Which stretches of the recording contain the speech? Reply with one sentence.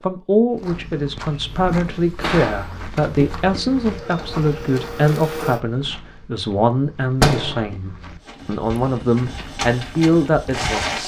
You can hear the speech from 0.0 to 11.0 s.